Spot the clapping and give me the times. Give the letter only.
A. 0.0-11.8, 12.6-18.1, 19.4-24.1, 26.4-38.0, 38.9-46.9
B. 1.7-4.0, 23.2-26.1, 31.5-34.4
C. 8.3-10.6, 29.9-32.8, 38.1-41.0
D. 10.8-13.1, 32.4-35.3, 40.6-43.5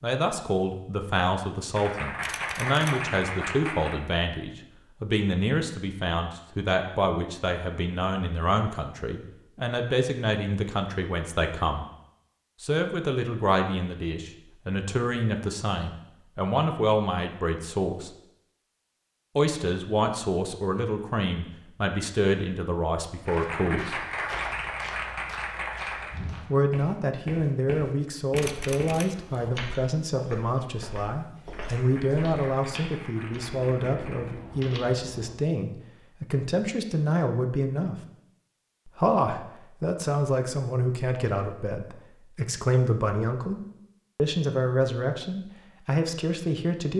B.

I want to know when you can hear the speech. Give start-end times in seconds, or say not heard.
0.0-11.8, 12.6-18.1, 19.4-24.1, 26.4-38.0, 38.9-46.9.